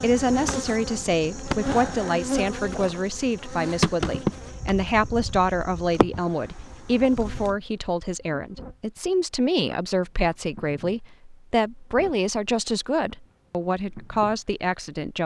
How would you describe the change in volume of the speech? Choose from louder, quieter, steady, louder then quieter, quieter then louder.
steady.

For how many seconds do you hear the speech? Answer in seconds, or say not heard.
15 s.